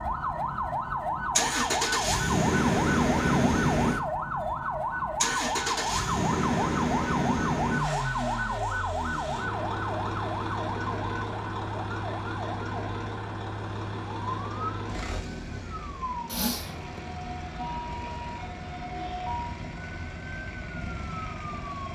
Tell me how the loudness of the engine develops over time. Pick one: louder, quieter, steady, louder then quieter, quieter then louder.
quieter.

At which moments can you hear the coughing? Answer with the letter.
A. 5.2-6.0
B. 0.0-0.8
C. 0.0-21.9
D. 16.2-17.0
D.